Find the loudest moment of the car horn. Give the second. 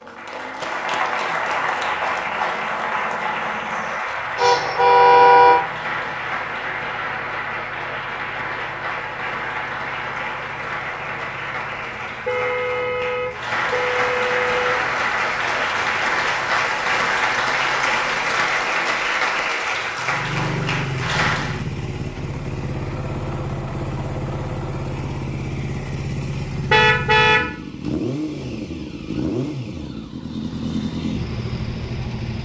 5 s.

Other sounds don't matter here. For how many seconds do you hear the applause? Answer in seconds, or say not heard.
22 s.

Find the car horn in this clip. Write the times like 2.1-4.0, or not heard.
4.3-5.6, 12.2-14.6, 26.7-27.6.